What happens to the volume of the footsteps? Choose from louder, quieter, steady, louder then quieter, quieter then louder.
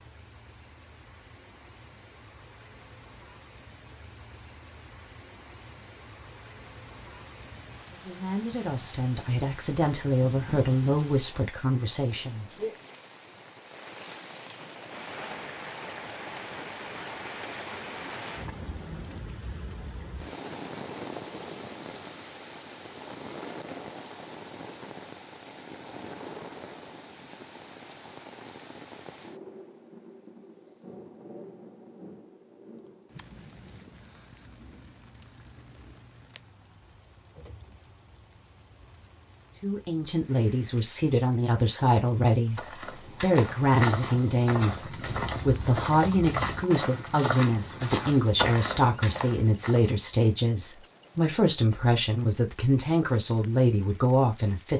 steady.